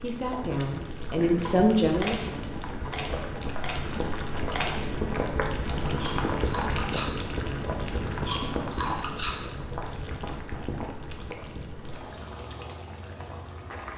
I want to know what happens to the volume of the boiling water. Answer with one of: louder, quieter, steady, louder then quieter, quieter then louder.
louder then quieter.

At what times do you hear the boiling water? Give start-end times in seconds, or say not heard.
0.0-13.9.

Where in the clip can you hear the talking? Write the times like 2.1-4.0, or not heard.
0.0-2.4.